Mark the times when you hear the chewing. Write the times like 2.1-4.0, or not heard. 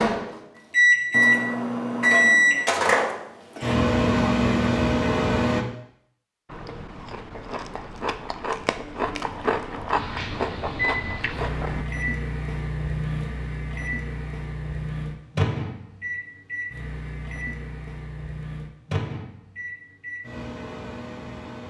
6.5-11.8.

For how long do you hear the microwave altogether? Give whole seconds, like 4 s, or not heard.
17 s.